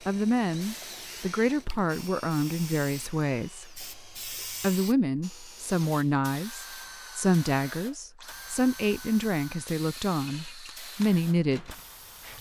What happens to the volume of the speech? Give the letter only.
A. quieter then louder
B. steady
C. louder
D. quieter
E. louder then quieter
B.